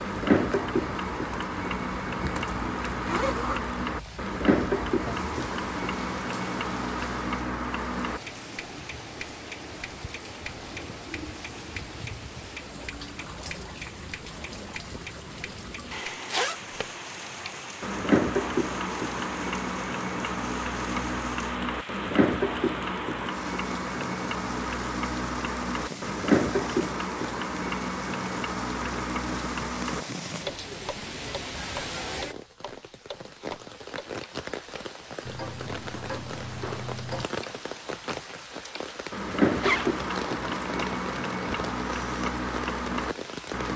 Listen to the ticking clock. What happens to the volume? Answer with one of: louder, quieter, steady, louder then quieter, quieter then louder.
steady.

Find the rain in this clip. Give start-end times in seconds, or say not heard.
0.0-43.7.